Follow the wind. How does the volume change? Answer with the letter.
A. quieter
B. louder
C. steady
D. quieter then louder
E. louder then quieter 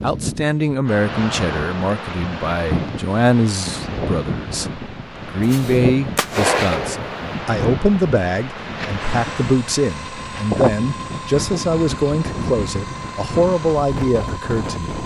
C.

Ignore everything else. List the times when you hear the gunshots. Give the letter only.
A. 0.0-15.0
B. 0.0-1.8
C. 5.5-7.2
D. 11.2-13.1
C.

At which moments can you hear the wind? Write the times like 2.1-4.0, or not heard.
0.0-15.0.